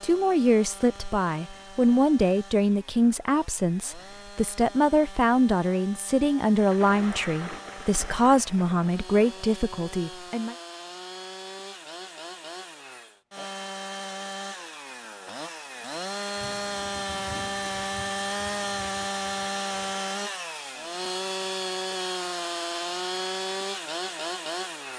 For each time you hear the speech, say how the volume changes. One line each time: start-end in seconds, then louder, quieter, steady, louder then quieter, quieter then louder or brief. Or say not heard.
0.0-10.6 steady.